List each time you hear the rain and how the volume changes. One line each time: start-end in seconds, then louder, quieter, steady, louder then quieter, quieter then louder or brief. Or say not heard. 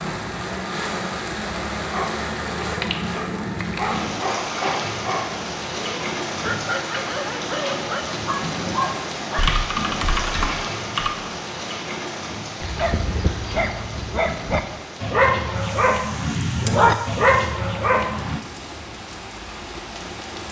0.0-20.4 quieter.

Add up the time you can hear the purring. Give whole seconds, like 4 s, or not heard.
not heard.